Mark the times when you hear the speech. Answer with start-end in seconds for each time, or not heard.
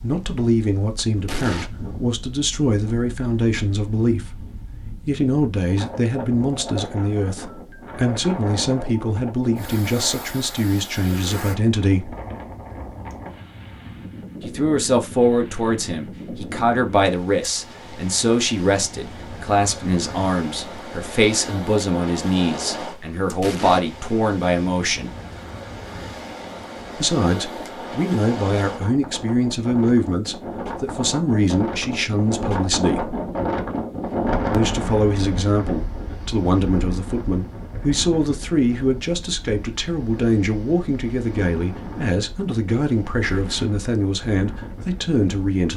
0.0-4.5, 5.0-12.2, 14.4-25.1, 26.9-33.1, 34.5-45.7.